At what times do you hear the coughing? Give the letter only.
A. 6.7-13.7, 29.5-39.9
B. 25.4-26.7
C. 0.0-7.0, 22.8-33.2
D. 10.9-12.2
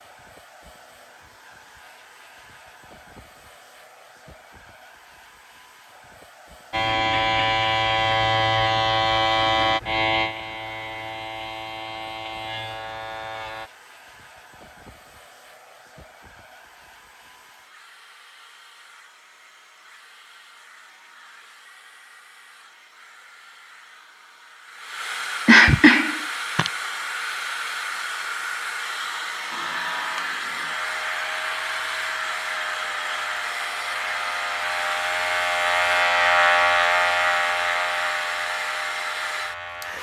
B.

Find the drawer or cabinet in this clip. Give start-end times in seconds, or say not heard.
not heard.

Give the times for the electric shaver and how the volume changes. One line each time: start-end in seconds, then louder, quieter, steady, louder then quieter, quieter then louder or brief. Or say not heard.
6.7-13.7 quieter
29.5-39.9 louder then quieter.